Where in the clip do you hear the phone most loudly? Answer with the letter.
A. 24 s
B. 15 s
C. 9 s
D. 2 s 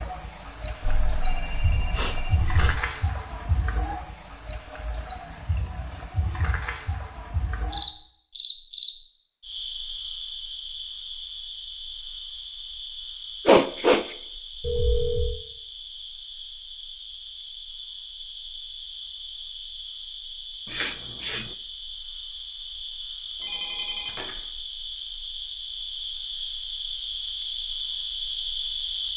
B.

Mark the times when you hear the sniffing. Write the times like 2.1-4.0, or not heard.
1.9-2.8, 13.4-14.2, 20.6-21.5.